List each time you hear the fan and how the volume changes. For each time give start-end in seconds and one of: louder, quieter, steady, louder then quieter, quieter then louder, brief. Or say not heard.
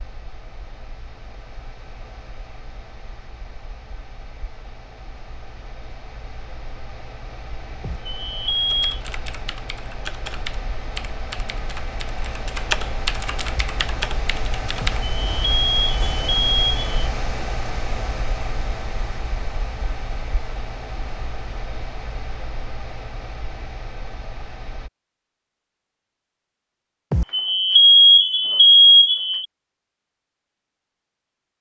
0.0-24.9 louder then quieter.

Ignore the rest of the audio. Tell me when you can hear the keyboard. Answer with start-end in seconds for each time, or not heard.
8.7-15.1.